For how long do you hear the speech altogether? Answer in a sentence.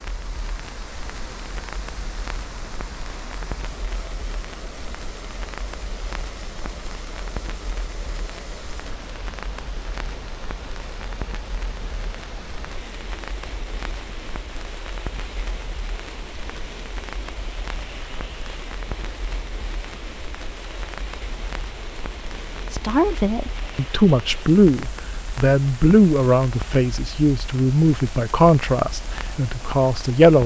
You can hear the speech for 8 seconds altogether.